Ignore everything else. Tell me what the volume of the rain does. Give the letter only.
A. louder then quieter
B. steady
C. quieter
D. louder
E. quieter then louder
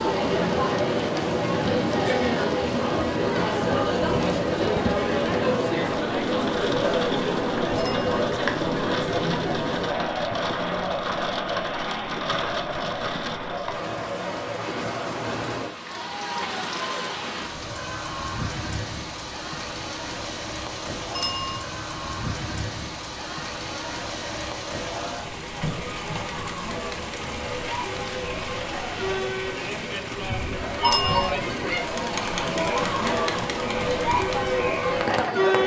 B.